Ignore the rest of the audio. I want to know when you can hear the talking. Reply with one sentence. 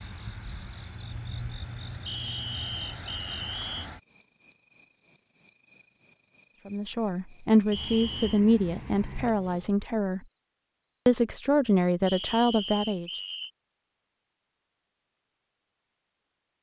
You can hear the talking from 6.7 to 10.2 s and from 11.1 to 13.1 s.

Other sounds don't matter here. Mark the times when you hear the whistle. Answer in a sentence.
You can hear the whistle from 2.0 to 3.9 s, from 7.7 to 8.4 s and from 12.1 to 13.5 s.